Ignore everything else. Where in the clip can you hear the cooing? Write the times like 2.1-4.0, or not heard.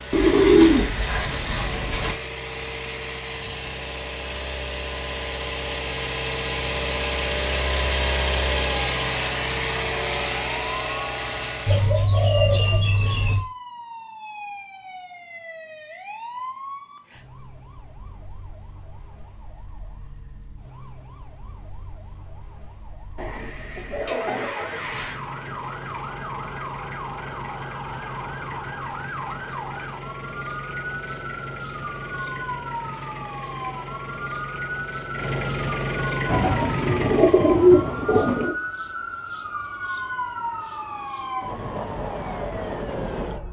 0.1-2.1, 11.7-13.4, 23.1-25.2, 36.2-38.5.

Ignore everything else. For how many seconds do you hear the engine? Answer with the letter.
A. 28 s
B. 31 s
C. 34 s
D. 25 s
D.